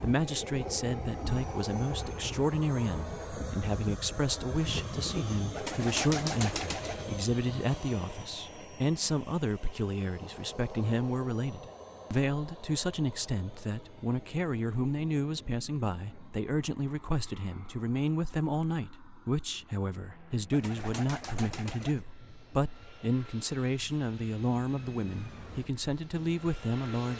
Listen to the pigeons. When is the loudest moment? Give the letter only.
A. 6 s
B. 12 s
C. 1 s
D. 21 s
A.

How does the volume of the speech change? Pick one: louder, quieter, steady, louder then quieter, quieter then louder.
steady.